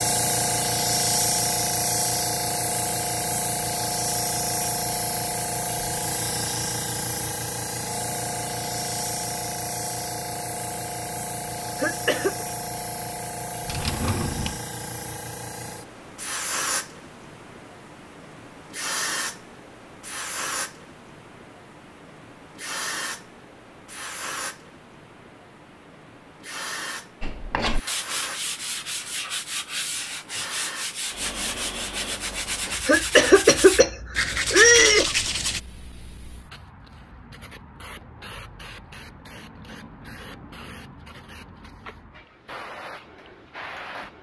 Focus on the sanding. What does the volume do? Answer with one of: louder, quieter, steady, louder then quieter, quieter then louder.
louder.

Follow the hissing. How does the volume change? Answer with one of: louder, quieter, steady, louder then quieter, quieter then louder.
quieter.